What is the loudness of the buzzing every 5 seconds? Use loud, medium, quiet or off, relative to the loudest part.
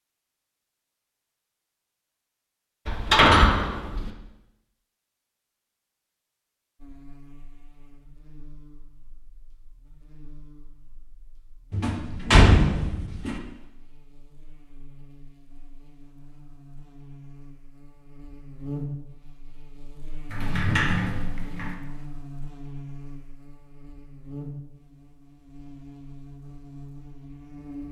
off, quiet, quiet, loud, loud, loud.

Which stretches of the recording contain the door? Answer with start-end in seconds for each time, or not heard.
2.9-4.1, 11.7-13.4, 20.3-21.8.